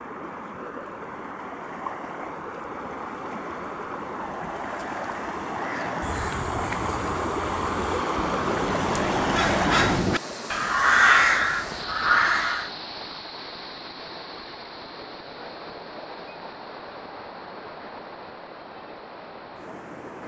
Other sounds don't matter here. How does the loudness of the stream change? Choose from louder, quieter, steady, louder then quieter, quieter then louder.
louder then quieter.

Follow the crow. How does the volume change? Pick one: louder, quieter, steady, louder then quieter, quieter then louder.
louder.